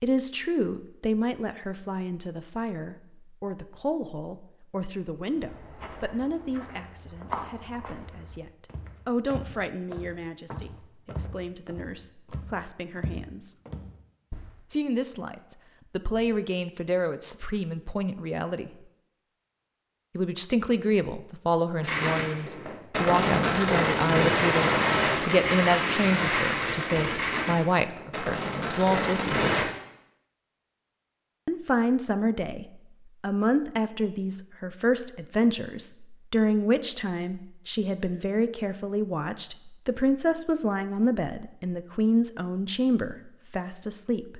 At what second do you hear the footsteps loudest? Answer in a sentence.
The volume of the footsteps peaks at 7 seconds.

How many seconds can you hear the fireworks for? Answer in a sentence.
You can hear the fireworks for 8 seconds altogether.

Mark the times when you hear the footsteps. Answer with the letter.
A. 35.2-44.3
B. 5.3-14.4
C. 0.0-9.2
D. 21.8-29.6
B.